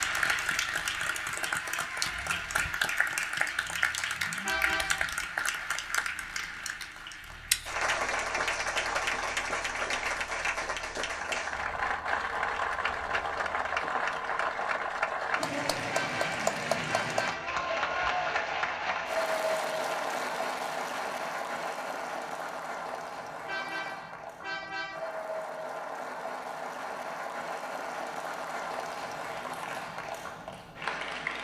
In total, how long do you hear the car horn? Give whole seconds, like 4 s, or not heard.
4 s.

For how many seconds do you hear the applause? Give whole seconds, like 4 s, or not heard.
31 s.